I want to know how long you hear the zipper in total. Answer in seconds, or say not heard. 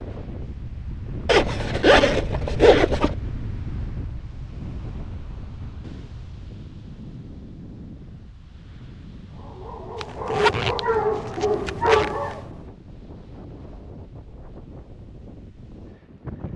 4 s.